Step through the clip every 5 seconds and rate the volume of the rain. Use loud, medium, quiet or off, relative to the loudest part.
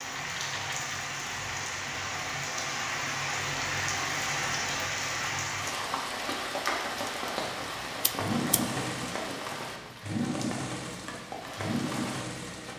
loud, loud, medium.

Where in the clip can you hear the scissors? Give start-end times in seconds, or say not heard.
8.0-9.1.